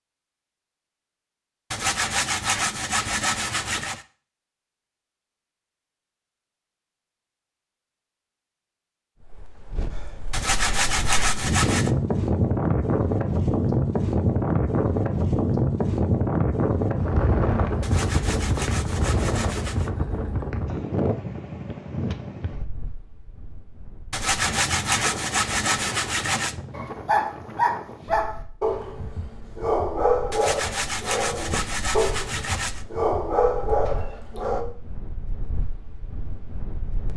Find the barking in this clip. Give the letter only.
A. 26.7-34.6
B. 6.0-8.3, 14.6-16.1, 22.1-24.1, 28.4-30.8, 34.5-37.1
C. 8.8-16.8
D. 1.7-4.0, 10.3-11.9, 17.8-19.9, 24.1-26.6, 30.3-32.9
A.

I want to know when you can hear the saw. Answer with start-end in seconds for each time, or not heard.
1.7-4.0, 10.3-11.9, 17.8-19.9, 24.1-26.6, 30.3-32.9.